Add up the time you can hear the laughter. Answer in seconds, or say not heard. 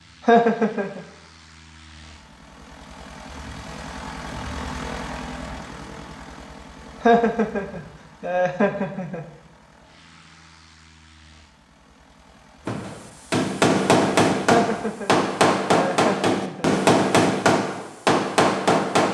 5 s.